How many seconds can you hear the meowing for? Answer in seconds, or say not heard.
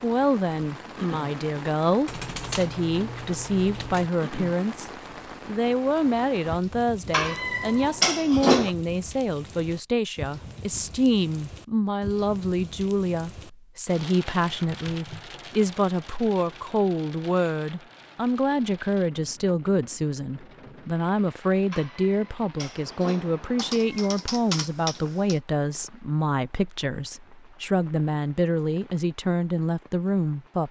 4 s.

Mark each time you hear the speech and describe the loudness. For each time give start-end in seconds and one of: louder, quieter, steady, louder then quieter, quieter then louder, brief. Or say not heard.
0.0-30.6 steady.